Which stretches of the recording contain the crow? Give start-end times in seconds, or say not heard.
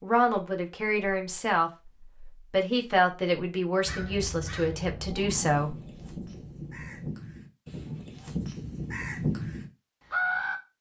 3.9-10.6.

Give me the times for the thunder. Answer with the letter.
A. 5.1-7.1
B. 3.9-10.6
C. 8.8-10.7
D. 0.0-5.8
A.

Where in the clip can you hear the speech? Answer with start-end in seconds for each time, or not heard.
0.0-5.8.